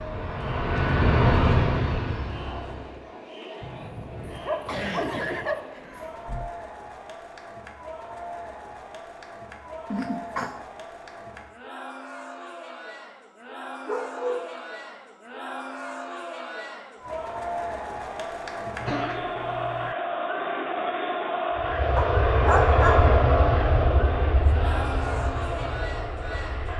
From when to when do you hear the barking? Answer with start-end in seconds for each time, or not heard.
3.6-5.6, 13.8-14.6, 21.9-23.1.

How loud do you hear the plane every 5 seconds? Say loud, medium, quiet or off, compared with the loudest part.
loud, off, off, off, loud, medium.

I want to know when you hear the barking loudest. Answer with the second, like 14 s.
23 s.